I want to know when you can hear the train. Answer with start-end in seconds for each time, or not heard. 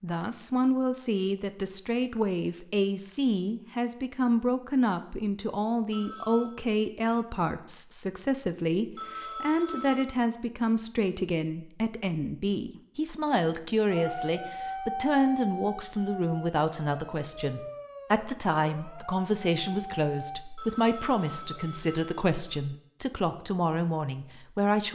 not heard.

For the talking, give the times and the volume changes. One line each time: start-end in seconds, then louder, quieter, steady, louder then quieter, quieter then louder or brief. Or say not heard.
0.0-24.9 steady.